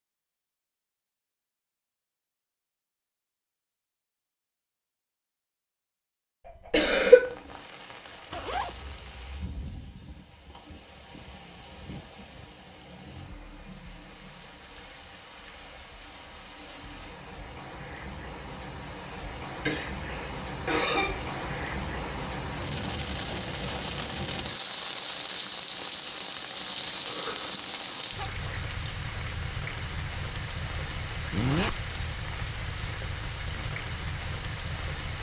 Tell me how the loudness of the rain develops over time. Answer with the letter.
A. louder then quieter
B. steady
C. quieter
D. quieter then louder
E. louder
E.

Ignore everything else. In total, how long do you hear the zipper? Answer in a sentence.
You can hear the zipper for 2 seconds altogether.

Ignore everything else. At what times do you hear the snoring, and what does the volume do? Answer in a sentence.
You can't hear the snoring here.